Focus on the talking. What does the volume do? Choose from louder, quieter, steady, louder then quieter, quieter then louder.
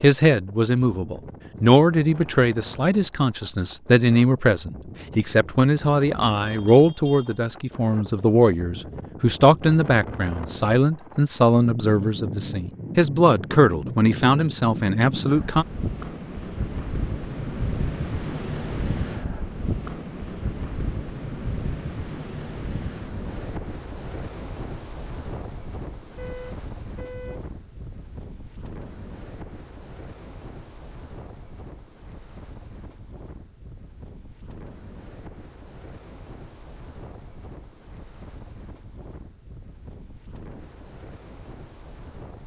steady.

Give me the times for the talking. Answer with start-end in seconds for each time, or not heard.
0.0-15.7.